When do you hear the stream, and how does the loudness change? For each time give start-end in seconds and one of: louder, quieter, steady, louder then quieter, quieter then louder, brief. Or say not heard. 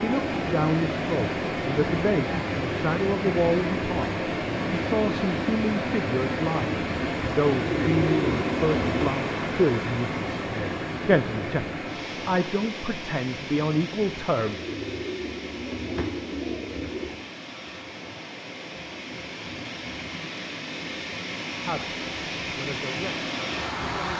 0.0-24.1 quieter then louder.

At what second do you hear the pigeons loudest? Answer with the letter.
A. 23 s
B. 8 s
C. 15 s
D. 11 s
B.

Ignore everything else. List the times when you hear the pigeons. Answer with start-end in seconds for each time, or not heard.
7.5-9.2, 14.4-17.2.